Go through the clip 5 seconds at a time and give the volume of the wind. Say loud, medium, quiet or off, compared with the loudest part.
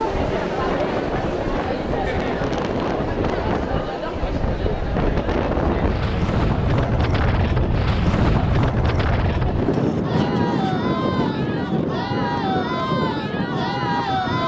medium, loud, loud.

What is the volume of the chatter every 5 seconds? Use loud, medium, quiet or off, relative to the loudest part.
loud, medium, loud.